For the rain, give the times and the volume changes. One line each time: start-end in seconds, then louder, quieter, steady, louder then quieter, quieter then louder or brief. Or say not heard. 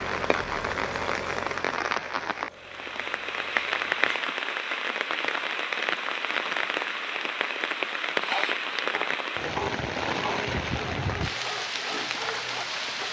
0.0-13.0 steady.